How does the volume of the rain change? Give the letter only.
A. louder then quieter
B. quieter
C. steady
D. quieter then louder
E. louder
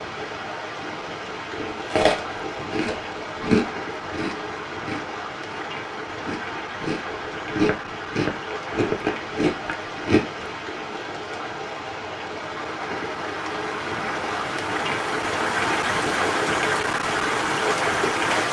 E.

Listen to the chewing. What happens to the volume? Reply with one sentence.
The loudness of the chewing goes down, then up.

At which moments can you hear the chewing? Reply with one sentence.
The chewing can be heard from 1.6 to 10.4 s.